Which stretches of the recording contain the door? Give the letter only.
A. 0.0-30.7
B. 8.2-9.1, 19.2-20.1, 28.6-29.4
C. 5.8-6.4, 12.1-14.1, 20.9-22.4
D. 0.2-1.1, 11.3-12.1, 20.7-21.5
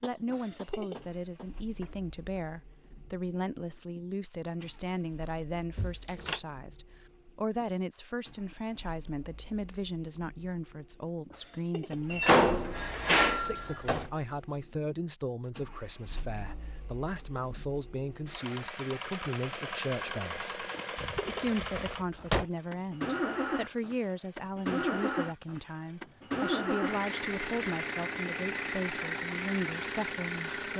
C.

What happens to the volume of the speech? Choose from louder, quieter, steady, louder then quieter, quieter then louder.
steady.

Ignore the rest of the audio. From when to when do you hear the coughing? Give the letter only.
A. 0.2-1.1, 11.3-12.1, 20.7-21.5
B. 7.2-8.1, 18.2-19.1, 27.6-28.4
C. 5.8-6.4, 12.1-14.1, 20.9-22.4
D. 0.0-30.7
A.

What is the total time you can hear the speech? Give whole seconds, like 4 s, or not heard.
31 s.